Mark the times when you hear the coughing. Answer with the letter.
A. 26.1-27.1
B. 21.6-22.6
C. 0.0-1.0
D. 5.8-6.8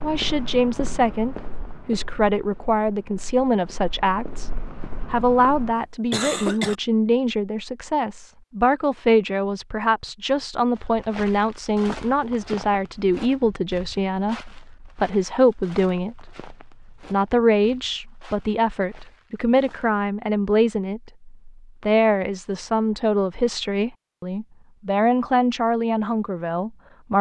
D.